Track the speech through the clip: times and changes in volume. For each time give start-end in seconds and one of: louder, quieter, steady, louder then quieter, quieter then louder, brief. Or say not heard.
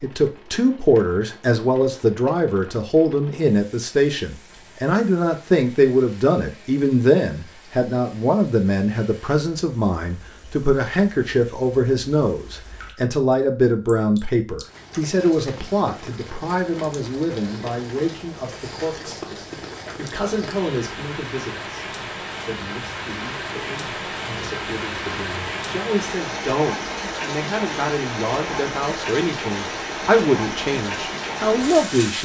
0.0-32.1 quieter then louder.